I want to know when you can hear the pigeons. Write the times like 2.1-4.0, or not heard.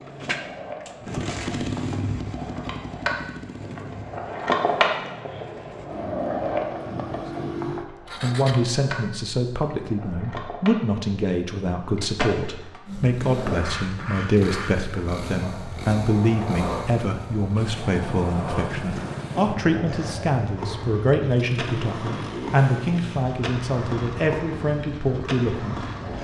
not heard.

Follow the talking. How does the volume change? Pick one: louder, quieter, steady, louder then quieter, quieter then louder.
steady.